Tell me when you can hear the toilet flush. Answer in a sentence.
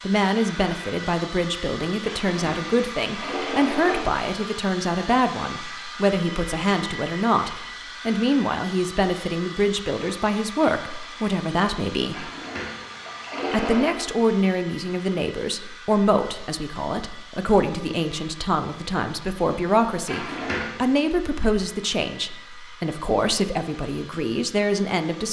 The toilet flush can be heard from 2.0 to 4.0 s, from 12.1 to 14.1 s and from 20.1 to 20.8 s.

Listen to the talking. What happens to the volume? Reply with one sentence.
The volume of the talking stays about the same.